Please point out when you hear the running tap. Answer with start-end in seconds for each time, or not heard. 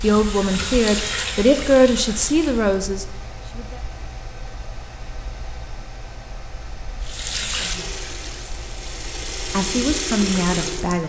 0.0-2.8, 7.0-11.0.